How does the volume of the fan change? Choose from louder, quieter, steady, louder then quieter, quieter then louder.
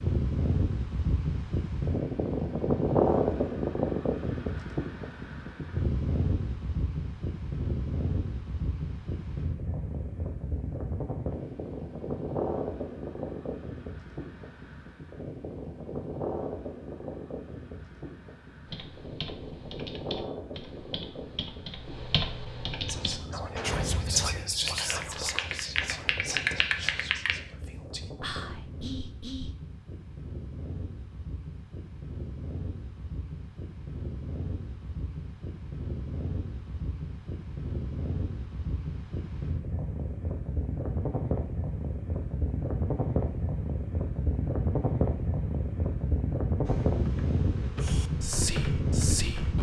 quieter then louder.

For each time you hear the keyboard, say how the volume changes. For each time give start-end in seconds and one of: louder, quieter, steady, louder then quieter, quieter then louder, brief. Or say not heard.
18.6-27.4 louder
46.6-49.5 brief.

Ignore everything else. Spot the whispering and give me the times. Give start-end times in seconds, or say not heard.
22.9-29.6, 47.8-49.5.